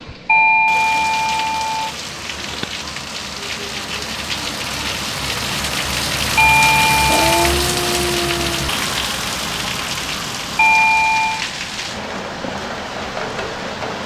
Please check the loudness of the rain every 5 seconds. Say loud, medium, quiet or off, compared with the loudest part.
medium, loud, medium.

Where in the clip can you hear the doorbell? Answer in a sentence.
You can hear the doorbell from 0.2 to 1.9 s, from 6.3 to 7.5 s and from 10.6 to 11.4 s.